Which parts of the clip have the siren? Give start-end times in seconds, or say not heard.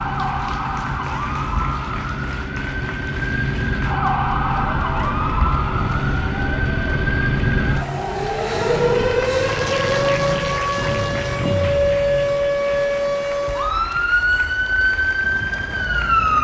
0.0-16.3.